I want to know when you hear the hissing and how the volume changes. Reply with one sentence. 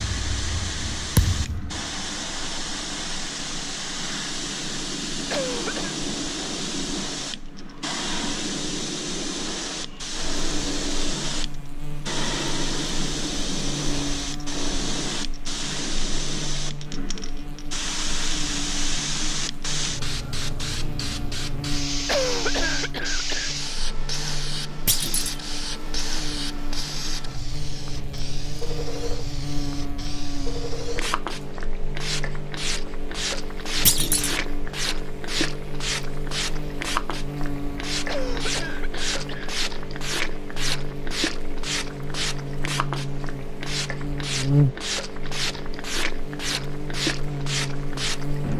You can hear the hissing from 0.0 to 48.5 s, at a steady volume.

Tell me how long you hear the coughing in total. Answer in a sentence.
The coughing can be heard for 4 seconds in total.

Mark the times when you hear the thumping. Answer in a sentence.
The thumping can be heard from 1.1 to 1.8 s, from 24.9 to 25.4 s and from 33.9 to 34.4 s.